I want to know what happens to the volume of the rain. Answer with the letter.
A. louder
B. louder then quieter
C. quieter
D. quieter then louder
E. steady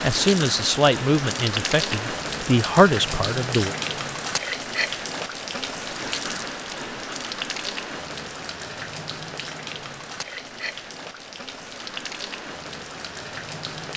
C.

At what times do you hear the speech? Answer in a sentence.
You can hear the speech from 0.0 to 3.8 s.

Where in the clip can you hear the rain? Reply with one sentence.
The rain can be heard from 0.0 to 13.9 s.